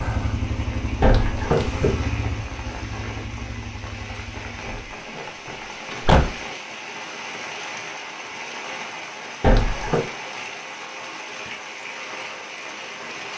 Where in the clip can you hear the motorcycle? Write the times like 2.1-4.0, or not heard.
0.0-4.8.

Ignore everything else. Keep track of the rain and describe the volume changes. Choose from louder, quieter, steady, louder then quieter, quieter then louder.
steady.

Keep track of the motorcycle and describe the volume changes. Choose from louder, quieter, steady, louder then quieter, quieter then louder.
quieter.